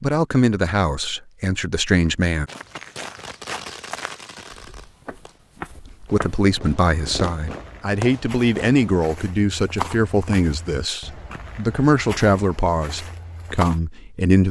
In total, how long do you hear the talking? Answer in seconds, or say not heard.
11 s.